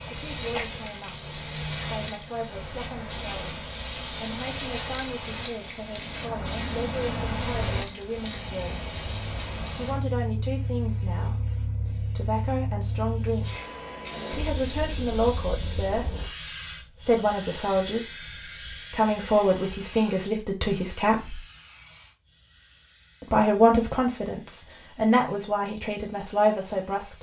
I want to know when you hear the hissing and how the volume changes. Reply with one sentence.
You can hear the hissing from 0.0 to 27.1 s, getting quieter.